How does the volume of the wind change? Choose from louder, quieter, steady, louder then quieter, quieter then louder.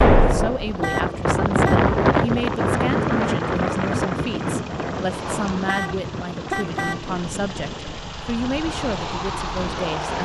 quieter.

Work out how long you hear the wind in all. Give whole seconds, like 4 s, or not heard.
10 s.